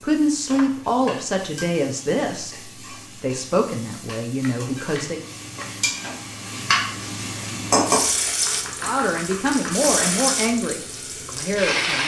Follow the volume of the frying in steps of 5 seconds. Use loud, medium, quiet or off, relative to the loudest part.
quiet, loud, loud.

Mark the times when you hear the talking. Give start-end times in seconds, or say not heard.
0.0-5.2, 8.8-12.0.